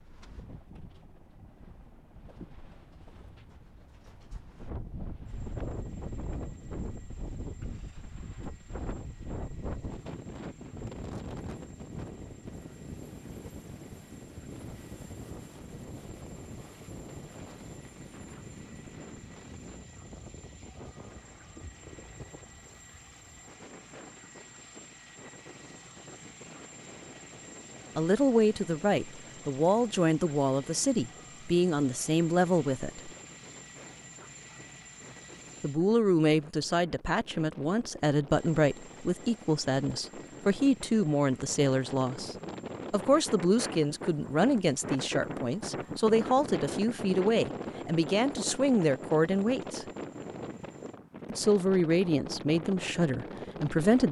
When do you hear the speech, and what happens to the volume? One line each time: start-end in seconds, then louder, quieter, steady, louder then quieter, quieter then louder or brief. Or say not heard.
27.9-33.1 steady
35.6-49.9 steady
51.3-54.0 brief.